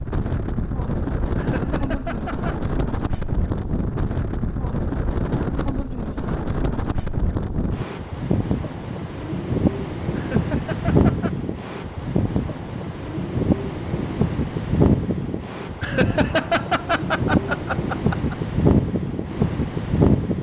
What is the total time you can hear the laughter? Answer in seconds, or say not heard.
5 s.